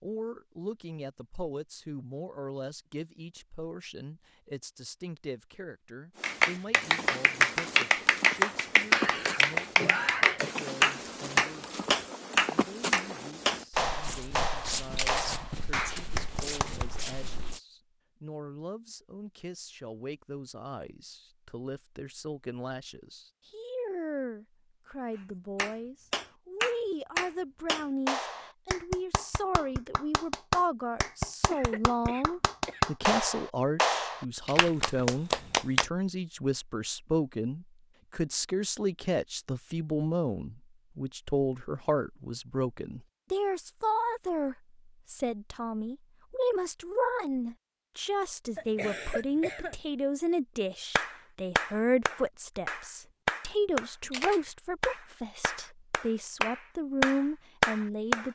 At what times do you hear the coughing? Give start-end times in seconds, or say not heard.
8.9-10.6, 31.5-32.9, 48.5-49.8.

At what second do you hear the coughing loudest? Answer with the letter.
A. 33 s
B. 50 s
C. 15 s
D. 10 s
D.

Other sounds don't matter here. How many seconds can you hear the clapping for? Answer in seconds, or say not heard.
28 s.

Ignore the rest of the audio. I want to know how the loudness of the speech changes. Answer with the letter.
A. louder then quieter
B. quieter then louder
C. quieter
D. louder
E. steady
D.